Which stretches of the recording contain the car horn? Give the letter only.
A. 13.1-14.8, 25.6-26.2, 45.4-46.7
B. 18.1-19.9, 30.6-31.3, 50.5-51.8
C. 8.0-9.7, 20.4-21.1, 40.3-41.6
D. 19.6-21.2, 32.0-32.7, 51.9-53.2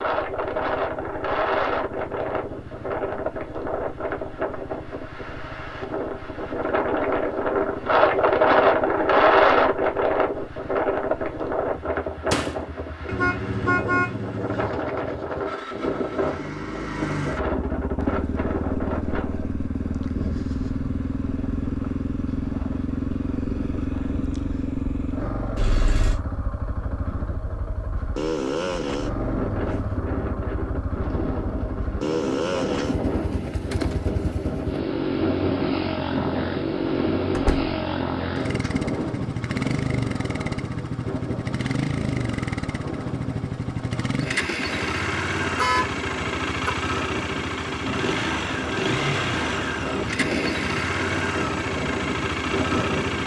A.